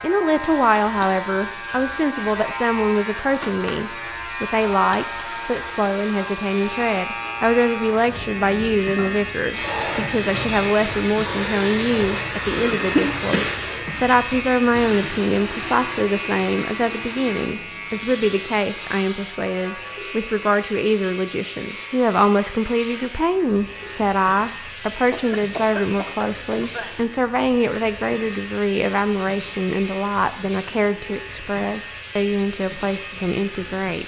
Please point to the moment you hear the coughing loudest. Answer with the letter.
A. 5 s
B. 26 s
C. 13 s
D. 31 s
C.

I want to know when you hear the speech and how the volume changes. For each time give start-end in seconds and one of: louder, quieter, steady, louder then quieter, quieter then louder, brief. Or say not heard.
0.0-34.0 steady.